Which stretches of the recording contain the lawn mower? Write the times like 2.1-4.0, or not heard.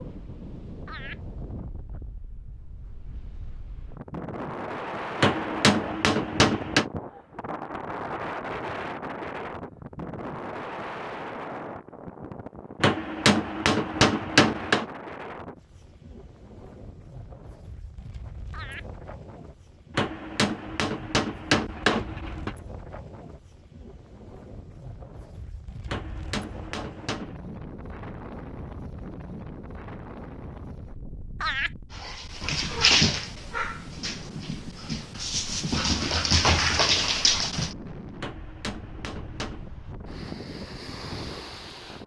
not heard.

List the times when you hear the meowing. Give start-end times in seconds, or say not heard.
not heard.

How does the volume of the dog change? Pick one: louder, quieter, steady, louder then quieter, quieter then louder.
quieter then louder.